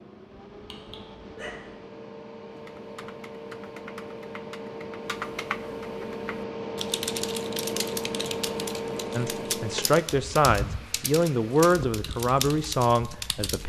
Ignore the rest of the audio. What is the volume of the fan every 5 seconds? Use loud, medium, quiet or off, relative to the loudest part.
medium, loud, medium.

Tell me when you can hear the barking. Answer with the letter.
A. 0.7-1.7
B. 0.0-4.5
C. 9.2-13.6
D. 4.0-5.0
A.